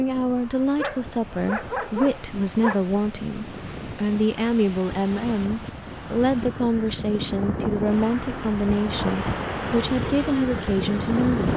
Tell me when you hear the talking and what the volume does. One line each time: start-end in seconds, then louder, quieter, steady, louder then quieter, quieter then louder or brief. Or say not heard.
0.0-11.5 steady.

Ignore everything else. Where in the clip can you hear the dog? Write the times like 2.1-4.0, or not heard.
0.8-2.8.